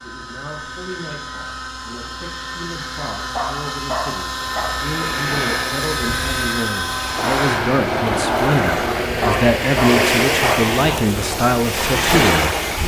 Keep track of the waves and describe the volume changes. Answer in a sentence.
The loudness of the waves goes up.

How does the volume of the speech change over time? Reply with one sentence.
The loudness of the speech goes up.